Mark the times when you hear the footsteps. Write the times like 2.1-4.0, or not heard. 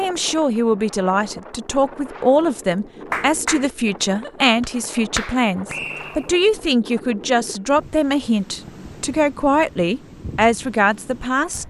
not heard.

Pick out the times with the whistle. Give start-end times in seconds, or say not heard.
5.7-6.4.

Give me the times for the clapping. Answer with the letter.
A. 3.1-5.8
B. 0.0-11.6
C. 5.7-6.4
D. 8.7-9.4
A.